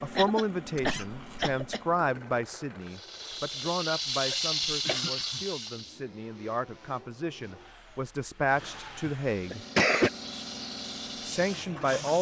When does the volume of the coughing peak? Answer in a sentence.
The volume of the coughing peaks at 10 seconds.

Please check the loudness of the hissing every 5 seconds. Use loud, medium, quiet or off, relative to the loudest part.
loud, medium, medium.